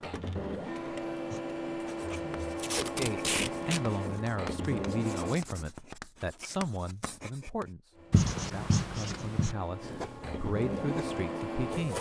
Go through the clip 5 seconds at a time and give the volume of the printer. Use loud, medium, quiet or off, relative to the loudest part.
loud, medium, loud.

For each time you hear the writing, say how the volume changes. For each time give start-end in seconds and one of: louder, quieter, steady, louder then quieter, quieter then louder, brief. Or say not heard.
1.2-11.2 louder then quieter.